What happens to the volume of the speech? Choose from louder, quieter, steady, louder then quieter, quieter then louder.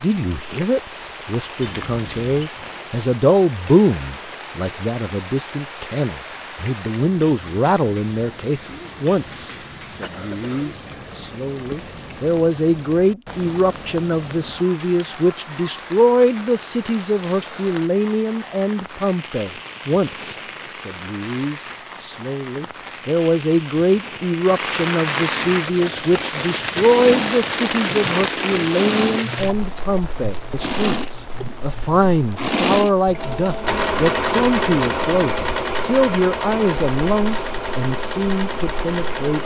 steady.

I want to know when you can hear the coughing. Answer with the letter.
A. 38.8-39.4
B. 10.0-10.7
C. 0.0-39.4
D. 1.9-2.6
B.